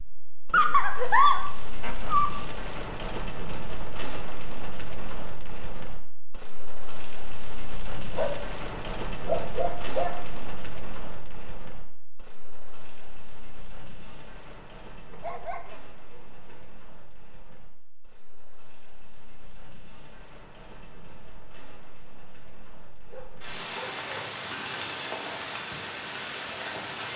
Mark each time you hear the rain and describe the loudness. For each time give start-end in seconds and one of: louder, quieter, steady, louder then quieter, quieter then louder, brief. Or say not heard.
0.0-27.1 quieter then louder.